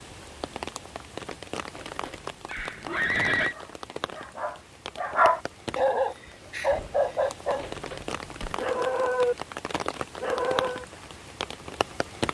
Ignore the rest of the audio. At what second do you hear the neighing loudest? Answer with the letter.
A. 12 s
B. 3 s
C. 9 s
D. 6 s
B.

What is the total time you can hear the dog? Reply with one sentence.
The dog can be heard for 7 seconds in total.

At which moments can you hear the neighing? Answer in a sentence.
The neighing can be heard from 1.8 to 3.5 s and from 7.5 to 8.7 s.